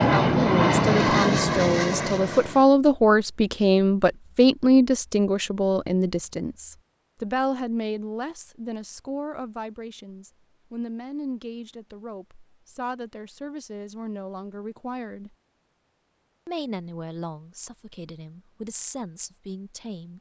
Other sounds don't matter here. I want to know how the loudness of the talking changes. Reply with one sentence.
The loudness of the talking goes down.